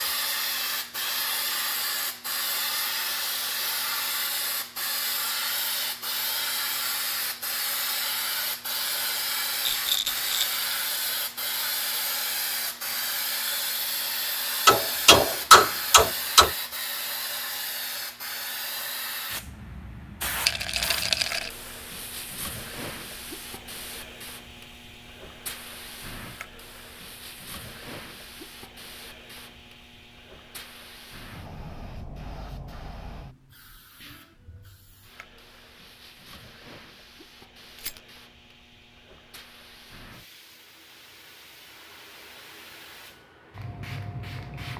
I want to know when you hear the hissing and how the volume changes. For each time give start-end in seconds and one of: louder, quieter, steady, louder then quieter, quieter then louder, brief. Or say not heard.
0.0-44.7 quieter.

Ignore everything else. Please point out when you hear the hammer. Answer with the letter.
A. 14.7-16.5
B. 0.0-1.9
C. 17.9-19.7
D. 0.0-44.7
A.